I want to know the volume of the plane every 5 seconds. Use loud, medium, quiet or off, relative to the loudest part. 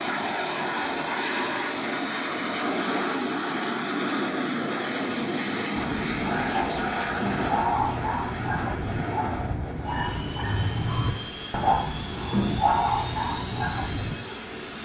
loud, loud, medium.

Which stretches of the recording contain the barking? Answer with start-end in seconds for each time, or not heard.
5.8-14.3.